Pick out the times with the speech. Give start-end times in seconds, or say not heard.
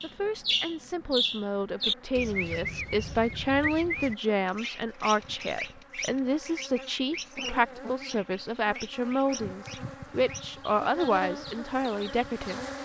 0.0-12.6.